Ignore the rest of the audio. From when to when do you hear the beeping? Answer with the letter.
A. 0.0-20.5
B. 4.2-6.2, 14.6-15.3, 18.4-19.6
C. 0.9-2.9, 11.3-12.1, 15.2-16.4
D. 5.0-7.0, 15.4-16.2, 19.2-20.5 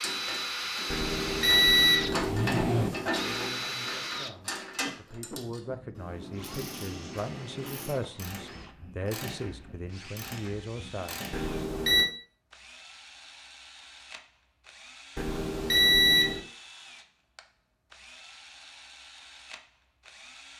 C.